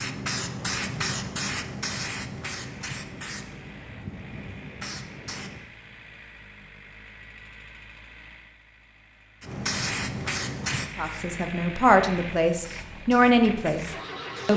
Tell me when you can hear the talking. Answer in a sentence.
You can hear the talking from 10.9 to 14.5 s.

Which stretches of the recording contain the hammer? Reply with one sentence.
The hammer can't be heard in this clip.